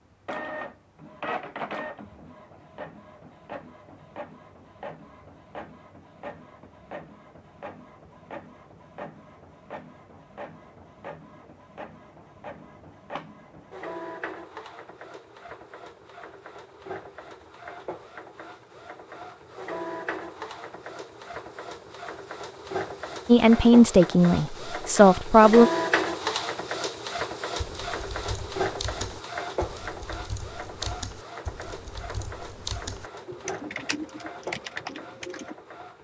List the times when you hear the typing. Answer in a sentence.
The typing can be heard from 27.6 to 35.5 s.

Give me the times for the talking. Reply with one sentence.
You can hear the talking from 23.2 to 25.7 s.